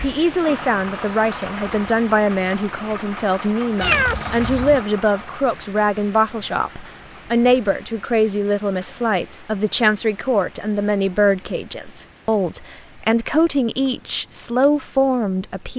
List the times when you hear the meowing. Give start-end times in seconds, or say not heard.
3.8-4.8.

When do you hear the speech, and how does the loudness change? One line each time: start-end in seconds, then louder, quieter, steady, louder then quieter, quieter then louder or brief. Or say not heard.
0.0-15.7 steady.